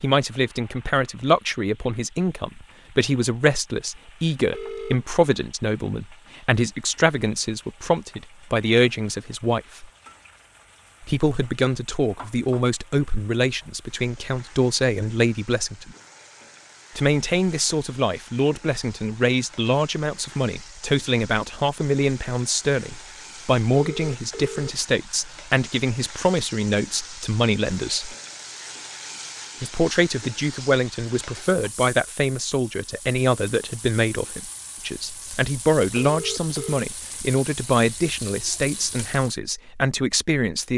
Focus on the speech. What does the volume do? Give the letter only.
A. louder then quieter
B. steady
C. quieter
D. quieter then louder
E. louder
B.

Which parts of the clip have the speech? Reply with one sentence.
The speech can be heard from 0.0 to 9.8 s, from 11.0 to 15.9 s, from 16.9 to 28.1 s and from 29.6 to 40.7 s.